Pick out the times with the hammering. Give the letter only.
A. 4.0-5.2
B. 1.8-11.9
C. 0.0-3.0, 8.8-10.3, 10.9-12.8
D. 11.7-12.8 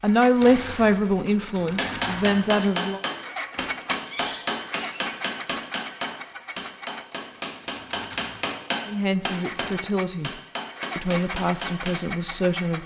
B.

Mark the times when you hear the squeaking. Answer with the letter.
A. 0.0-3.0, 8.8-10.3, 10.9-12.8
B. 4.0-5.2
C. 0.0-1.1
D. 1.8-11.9
B.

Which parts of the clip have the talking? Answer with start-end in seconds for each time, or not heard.
0.0-3.0, 8.8-10.3, 10.9-12.8.